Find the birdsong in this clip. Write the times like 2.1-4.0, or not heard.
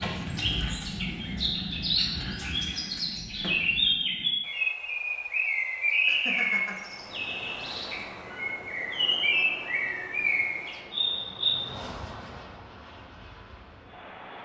0.0-11.6.